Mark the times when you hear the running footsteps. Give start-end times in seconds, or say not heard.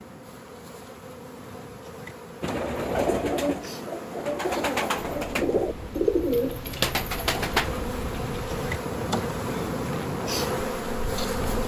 not heard.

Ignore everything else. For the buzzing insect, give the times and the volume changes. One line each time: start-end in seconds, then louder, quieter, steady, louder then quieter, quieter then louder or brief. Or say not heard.
0.0-11.6 louder.